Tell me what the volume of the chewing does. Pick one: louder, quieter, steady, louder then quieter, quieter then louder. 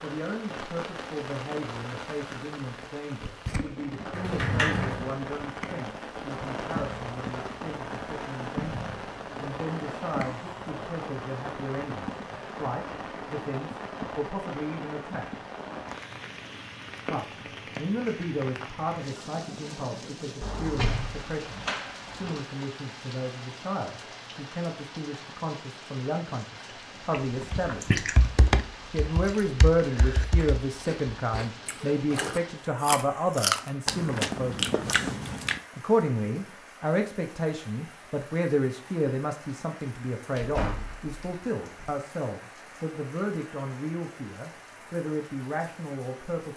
quieter then louder.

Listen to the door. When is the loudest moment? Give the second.
5 s.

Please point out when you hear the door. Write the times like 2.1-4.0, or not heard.
4.2-5.1, 20.4-22.4, 40.3-42.0.